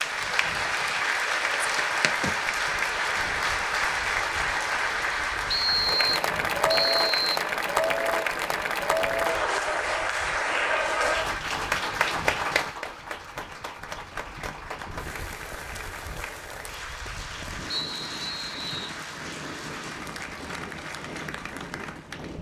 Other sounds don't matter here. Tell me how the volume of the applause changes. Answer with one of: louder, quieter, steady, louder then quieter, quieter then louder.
quieter.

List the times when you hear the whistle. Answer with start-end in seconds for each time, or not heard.
5.5-7.4, 17.7-18.9.